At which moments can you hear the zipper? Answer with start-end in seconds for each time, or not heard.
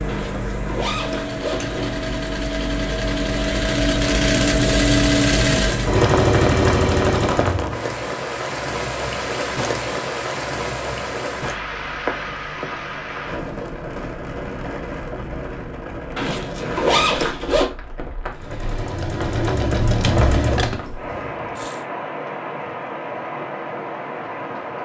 0.1-2.0, 16.1-17.7.